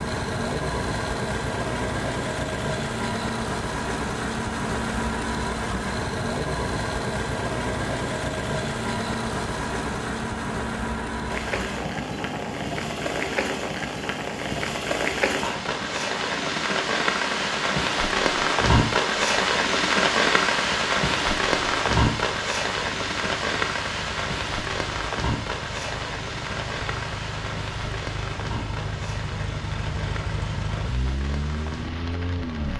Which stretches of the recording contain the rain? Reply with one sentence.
You can hear the rain from 11.3 to 32.7 s.